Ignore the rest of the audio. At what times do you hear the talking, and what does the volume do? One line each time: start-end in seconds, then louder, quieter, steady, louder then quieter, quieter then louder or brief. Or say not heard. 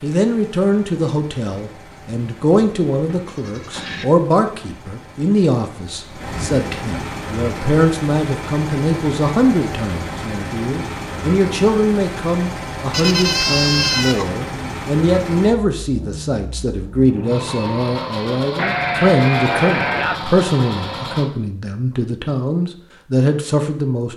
0.0-24.1 steady.